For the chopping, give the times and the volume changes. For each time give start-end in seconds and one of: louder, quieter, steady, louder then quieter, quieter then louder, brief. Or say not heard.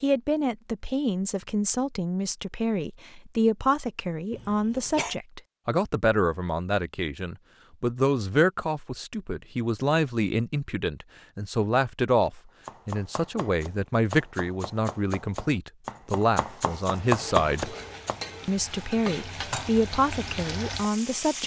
12.7-18.1 louder.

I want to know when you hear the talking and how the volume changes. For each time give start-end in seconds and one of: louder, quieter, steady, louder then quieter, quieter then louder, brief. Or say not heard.
0.0-17.8 steady
18.4-21.4 brief.